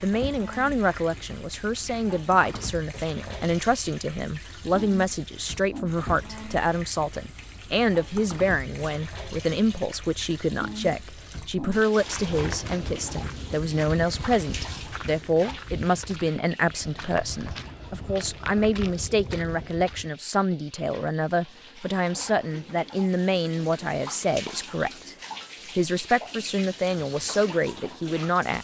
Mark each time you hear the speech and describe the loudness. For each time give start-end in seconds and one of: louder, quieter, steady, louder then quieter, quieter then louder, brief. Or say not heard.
0.0-25.1 steady
25.8-28.5 brief.